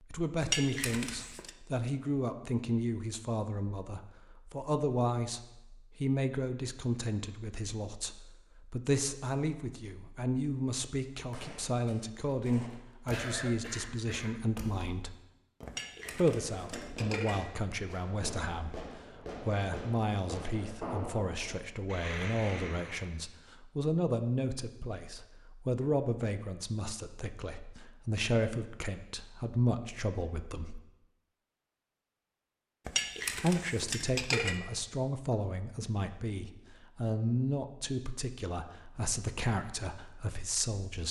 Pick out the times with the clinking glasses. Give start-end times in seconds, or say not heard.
0.4-1.5, 15.7-17.4, 32.9-34.5.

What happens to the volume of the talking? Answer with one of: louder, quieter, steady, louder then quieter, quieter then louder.
steady.